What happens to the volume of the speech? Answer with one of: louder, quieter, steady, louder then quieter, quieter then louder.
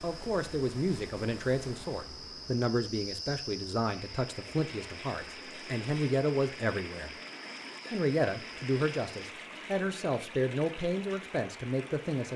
steady.